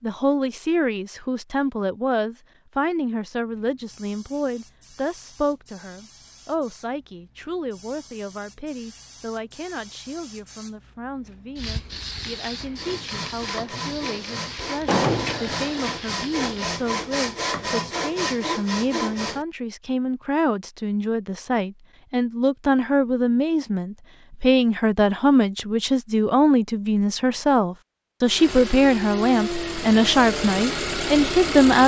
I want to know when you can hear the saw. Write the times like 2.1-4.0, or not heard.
12.6-19.4.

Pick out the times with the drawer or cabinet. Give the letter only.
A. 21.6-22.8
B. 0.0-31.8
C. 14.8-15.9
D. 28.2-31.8
C.